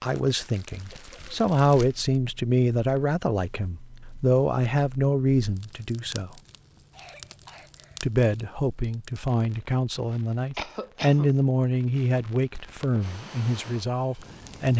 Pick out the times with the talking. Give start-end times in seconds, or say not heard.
0.0-6.3, 8.0-14.7.